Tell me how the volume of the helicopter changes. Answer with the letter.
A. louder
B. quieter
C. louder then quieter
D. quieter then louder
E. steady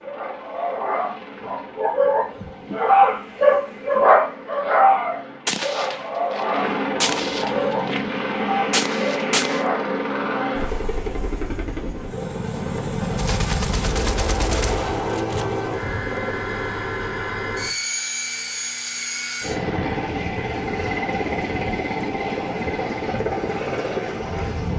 A.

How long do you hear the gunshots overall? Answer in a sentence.
The gunshots can be heard for 7 seconds in total.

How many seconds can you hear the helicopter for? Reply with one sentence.
The helicopter can be heard for 25 seconds in total.